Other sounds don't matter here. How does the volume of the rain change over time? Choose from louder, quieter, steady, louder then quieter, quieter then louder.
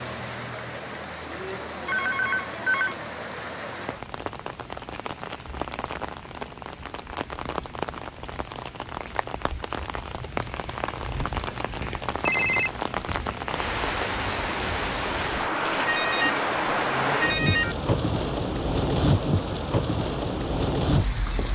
louder.